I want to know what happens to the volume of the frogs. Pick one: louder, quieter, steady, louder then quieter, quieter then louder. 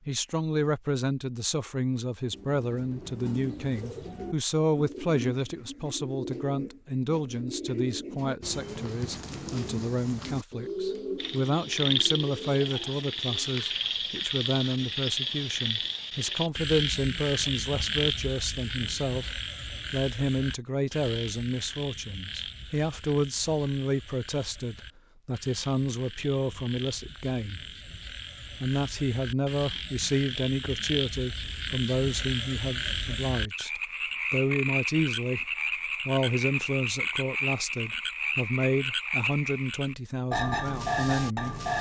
quieter then louder.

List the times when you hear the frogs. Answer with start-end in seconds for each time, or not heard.
11.2-41.7.